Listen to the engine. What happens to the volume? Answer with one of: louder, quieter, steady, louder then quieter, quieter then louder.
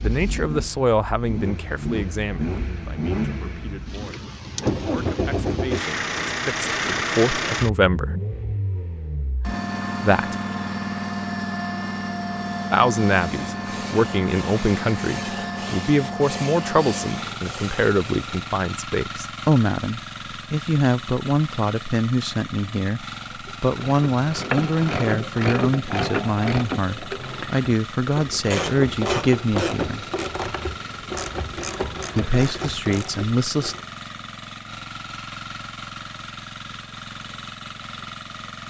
quieter.